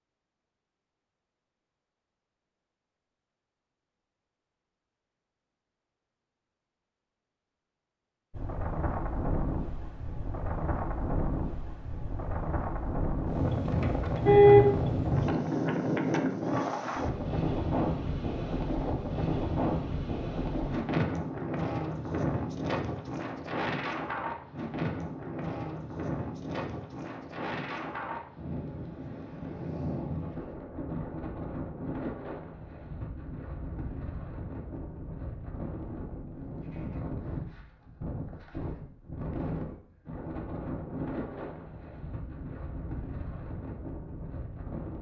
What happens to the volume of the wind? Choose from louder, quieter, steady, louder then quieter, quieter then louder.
quieter.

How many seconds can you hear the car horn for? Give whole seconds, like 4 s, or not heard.
2 s.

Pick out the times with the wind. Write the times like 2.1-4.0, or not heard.
8.3-44.9.